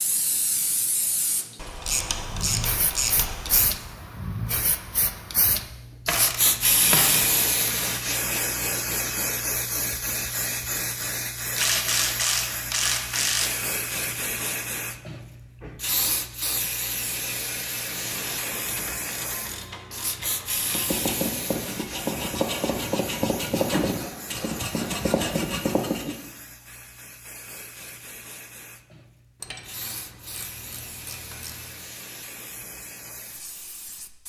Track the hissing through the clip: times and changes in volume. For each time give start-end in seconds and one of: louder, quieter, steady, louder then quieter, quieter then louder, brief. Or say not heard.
0.0-34.2 quieter.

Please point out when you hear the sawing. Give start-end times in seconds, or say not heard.
20.6-26.1.